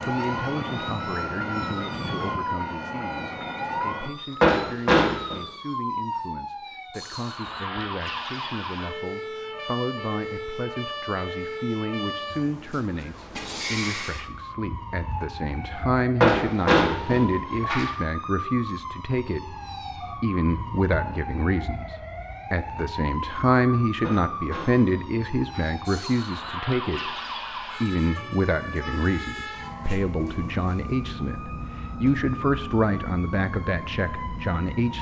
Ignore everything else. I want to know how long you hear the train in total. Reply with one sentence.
You can hear the train for 4 seconds altogether.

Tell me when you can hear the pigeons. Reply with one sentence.
The pigeons can't be heard in this clip.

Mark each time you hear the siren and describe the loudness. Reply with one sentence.
The siren can be heard from 0.0 to 34.9 s, at a steady volume.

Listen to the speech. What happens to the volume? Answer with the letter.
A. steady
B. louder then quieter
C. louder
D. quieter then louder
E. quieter
C.